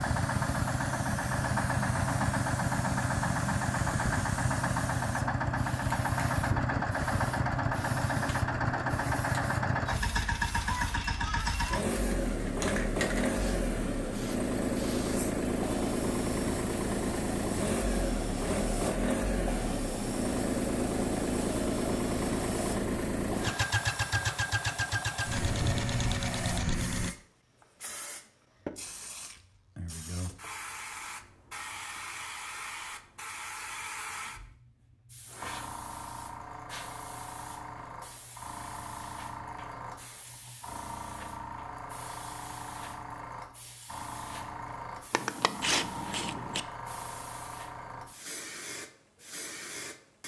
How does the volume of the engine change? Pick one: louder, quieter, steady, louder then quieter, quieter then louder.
steady.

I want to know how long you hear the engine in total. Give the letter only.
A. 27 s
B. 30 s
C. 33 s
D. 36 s
A.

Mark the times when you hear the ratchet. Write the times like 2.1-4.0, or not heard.
45.1-46.6.